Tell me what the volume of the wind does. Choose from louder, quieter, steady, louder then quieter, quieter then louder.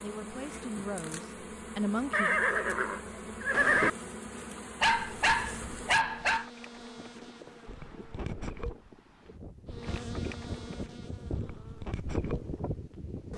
louder.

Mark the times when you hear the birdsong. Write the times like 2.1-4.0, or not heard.
not heard.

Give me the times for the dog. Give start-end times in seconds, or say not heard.
4.8-6.5.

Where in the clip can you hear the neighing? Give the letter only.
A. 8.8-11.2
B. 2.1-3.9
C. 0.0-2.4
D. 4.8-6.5
B.